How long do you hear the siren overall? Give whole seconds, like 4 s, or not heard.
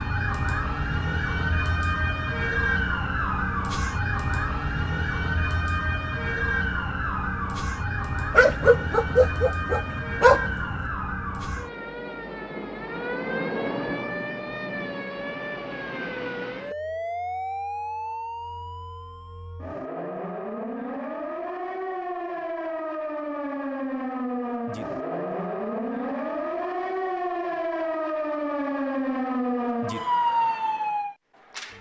32 s.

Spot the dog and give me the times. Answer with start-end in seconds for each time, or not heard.
8.3-10.8.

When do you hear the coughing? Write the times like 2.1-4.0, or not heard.
not heard.